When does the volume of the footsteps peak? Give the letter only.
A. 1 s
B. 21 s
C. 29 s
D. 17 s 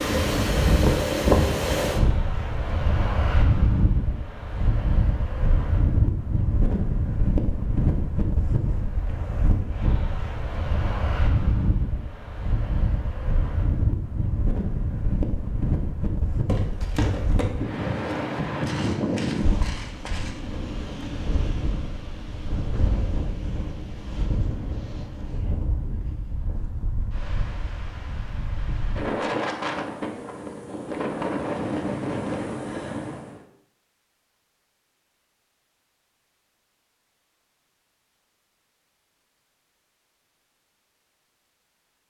D.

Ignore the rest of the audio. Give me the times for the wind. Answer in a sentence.
The wind can be heard from 0.0 to 33.5 s.